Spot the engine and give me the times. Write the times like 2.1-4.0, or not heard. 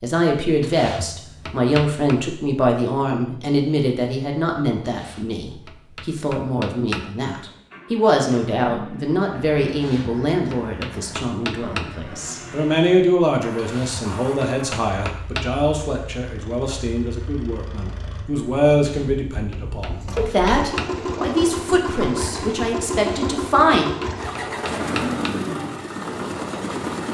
7.3-27.0.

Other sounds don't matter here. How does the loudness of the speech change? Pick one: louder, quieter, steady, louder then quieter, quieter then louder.
steady.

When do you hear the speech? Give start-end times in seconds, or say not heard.
0.0-23.9.